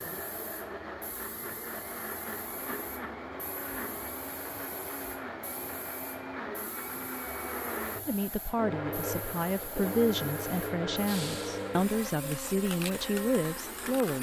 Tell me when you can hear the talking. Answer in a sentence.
You can hear the talking from 8.1 to 14.1 s.